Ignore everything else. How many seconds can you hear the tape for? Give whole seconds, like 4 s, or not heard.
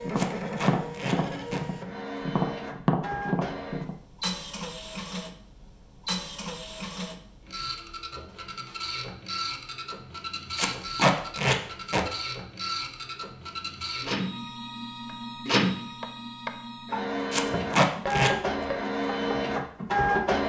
4 s.